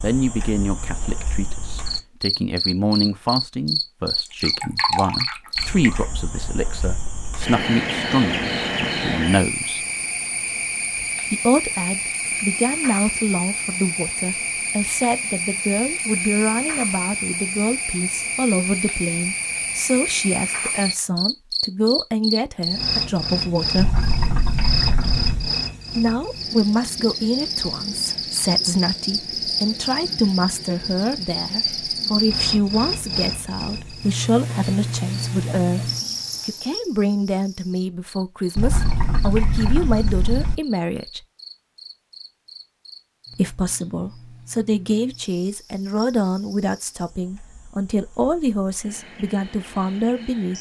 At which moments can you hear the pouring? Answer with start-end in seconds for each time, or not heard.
4.2-6.0, 23.8-25.5, 38.5-40.5.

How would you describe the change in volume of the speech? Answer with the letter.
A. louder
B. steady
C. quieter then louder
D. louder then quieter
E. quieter
B.